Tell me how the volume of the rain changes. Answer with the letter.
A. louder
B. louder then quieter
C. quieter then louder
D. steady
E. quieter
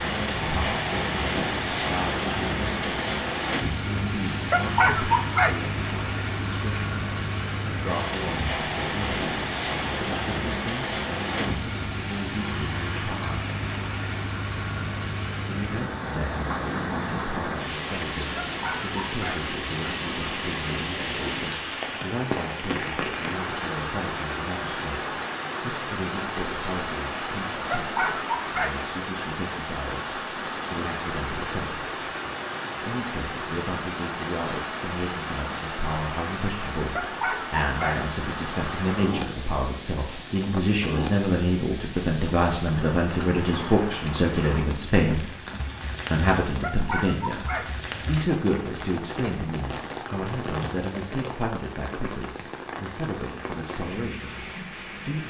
E.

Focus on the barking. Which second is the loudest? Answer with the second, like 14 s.
5 s.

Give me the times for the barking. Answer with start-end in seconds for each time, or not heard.
4.5-5.5, 18.4-19.4, 27.7-28.8, 37.0-38.0, 46.6-47.6.